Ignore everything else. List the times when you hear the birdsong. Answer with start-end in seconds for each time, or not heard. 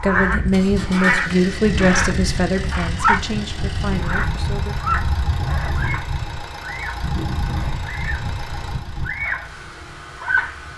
0.0-3.2, 4.0-8.3, 9.0-9.6, 10.2-10.6.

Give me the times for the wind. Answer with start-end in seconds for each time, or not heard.
0.0-10.7.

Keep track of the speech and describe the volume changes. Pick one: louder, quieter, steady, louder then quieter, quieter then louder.
quieter.